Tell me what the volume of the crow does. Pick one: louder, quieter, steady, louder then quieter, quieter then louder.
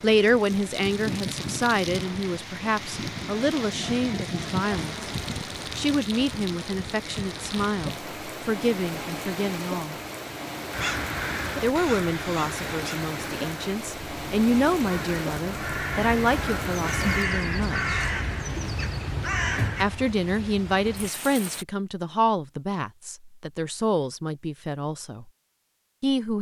quieter then louder.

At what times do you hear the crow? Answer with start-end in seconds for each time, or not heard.
10.7-19.9.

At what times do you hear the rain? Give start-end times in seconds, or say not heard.
0.0-21.6.